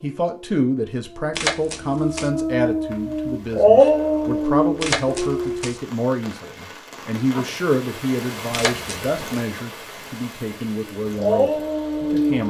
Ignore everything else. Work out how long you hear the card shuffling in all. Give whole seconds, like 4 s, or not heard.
3 s.